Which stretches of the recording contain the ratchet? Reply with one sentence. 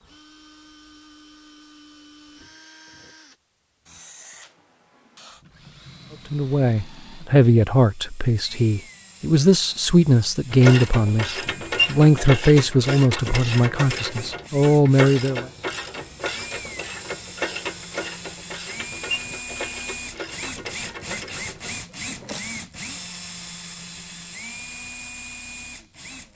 You can hear the ratchet from 10.5 to 22.4 s.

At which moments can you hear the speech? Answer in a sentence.
You can hear the speech from 6.3 to 11.2 s and from 11.8 to 15.4 s.